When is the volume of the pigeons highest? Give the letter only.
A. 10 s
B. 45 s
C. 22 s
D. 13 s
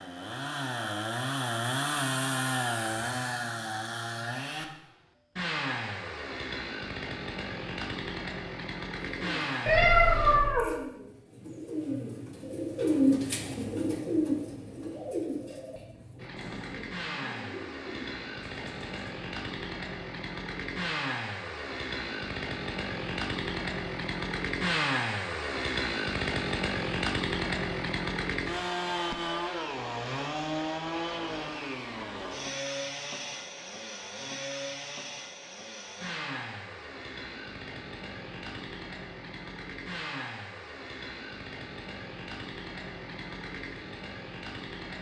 D.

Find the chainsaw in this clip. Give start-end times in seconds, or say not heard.
0.0-10.4, 16.1-44.9.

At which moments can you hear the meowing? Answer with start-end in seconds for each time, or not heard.
9.7-10.8.